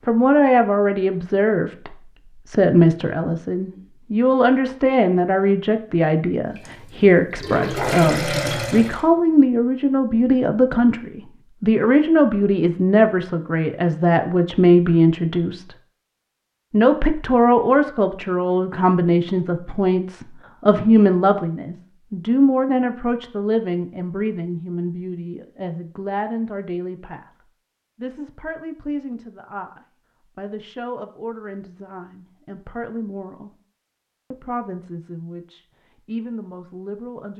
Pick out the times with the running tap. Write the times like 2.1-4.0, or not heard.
6.5-9.1.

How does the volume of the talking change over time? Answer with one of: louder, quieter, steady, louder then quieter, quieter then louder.
quieter.